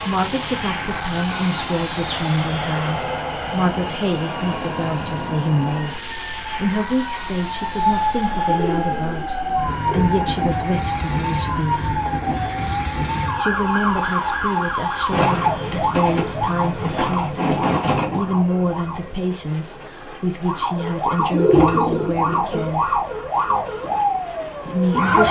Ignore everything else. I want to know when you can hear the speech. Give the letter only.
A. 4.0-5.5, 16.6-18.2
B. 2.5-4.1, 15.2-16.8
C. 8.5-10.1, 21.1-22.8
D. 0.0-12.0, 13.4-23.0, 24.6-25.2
D.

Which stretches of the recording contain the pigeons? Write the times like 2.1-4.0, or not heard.
8.5-10.1, 21.1-22.8.